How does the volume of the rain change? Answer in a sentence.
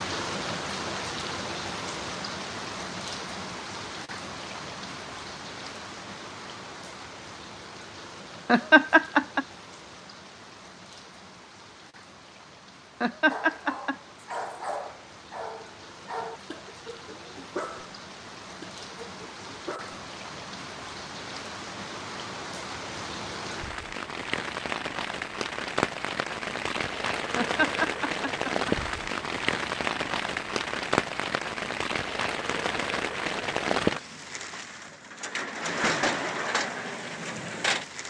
The loudness of the rain goes down, then up.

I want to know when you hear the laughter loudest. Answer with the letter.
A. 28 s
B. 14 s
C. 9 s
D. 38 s
C.